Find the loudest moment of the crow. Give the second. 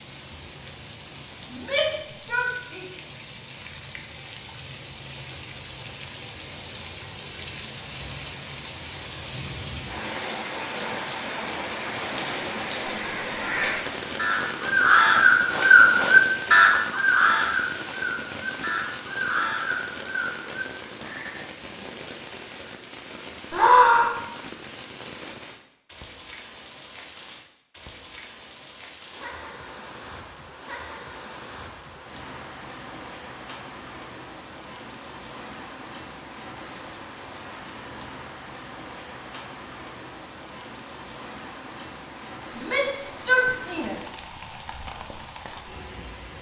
16 s.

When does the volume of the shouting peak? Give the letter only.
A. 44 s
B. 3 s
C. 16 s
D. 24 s
D.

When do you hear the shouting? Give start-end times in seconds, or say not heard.
1.5-2.8, 23.5-24.1, 42.5-44.1.